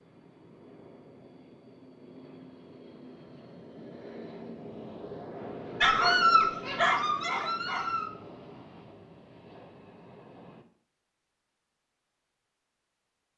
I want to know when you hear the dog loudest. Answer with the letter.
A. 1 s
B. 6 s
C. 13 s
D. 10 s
B.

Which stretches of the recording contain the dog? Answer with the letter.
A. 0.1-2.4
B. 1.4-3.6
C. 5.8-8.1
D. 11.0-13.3
C.